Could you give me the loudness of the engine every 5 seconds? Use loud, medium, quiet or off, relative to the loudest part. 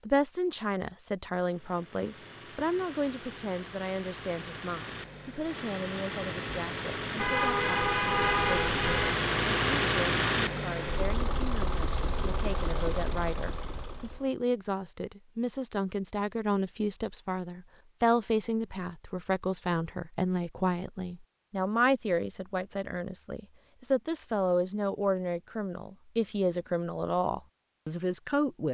quiet, loud, loud, off, off, off.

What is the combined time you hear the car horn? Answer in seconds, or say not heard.
2 s.